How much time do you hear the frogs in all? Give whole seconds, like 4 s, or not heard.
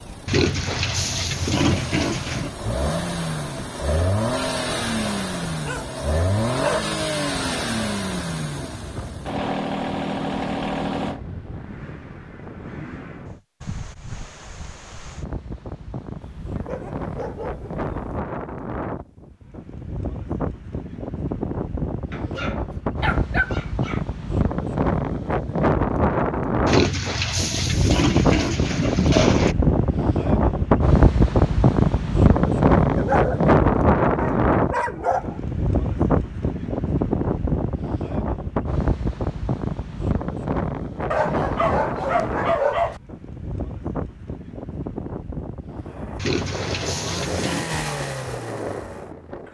not heard.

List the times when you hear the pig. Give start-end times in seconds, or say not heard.
0.2-2.5, 26.6-29.6, 46.1-47.7.